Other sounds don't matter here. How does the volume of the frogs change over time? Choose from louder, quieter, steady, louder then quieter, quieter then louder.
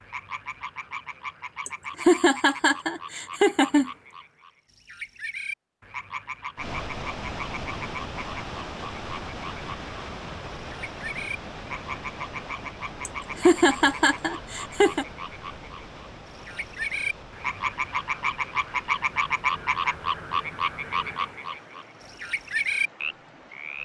louder.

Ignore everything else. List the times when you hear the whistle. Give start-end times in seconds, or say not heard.
not heard.